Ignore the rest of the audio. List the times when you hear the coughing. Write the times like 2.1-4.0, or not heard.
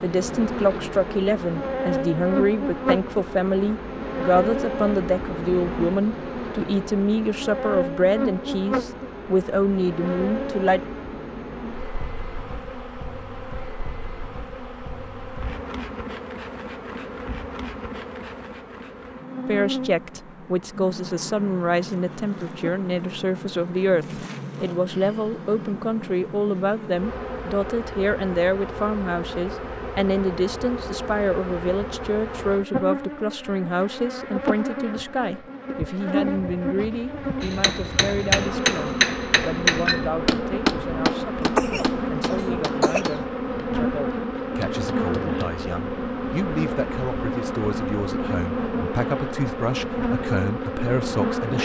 41.5-43.1.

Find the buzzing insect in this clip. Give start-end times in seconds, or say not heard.
0.0-51.6.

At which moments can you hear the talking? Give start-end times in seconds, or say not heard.
0.0-10.8, 19.4-51.6.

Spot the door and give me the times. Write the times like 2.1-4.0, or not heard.
not heard.